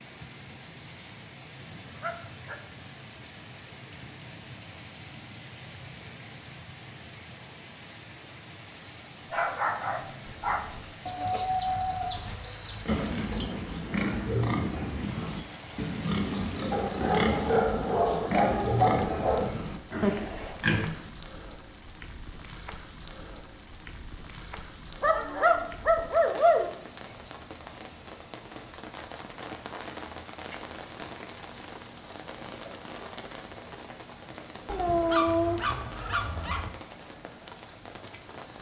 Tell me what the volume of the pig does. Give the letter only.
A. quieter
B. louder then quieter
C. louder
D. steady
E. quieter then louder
D.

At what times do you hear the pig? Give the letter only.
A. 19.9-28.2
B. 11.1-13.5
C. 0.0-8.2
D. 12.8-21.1
D.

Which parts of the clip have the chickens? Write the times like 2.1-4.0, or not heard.
11.1-13.5.